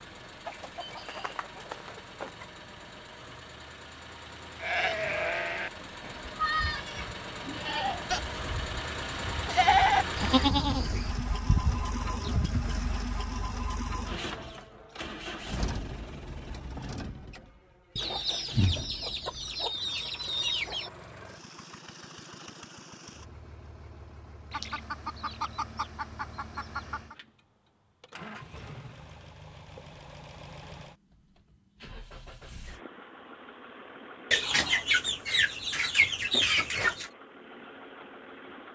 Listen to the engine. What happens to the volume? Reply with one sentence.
The loudness of the engine goes up, then down.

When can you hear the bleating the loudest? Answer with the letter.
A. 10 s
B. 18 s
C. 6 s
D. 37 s
A.